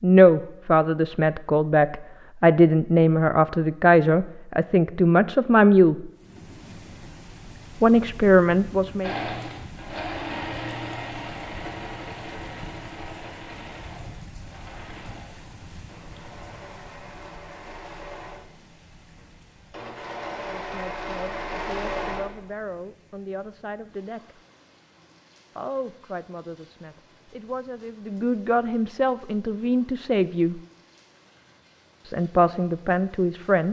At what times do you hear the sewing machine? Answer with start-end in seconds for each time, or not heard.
9.0-22.4.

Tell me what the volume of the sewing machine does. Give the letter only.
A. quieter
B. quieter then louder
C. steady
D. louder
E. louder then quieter
B.